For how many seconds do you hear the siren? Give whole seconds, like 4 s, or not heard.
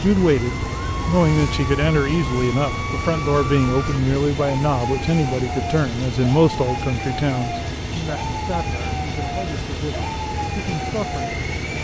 12 s.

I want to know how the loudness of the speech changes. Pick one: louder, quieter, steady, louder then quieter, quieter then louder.
quieter.